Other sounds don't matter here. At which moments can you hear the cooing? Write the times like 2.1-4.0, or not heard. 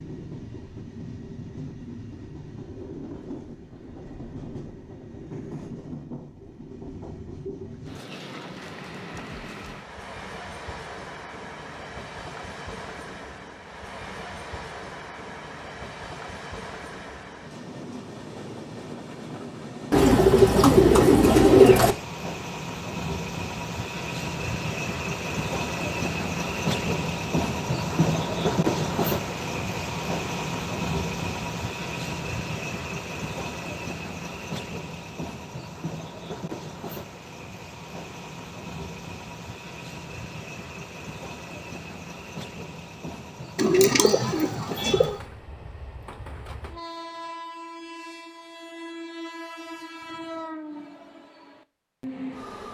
19.9-21.9, 43.5-45.1.